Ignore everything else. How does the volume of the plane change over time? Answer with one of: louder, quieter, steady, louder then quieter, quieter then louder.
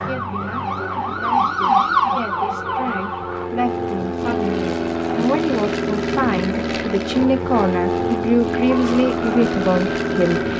louder.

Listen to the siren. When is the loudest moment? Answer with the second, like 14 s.
2 s.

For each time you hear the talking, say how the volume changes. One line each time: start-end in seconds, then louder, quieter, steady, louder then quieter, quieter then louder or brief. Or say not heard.
0.0-10.5 louder.